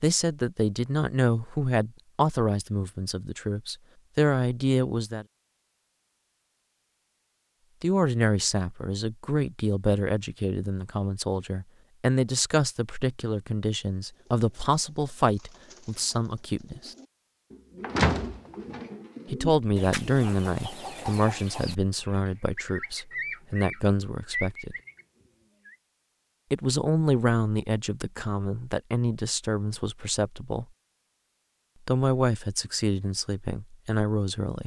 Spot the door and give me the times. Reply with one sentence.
The door can be heard from 17.9 to 18.6 s.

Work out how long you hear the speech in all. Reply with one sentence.
The speech can be heard for 27 seconds in total.